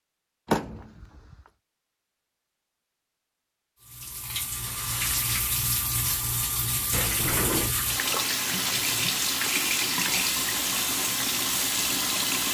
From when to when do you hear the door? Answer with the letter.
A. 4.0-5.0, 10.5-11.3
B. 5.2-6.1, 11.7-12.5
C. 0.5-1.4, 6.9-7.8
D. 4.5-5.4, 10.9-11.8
C.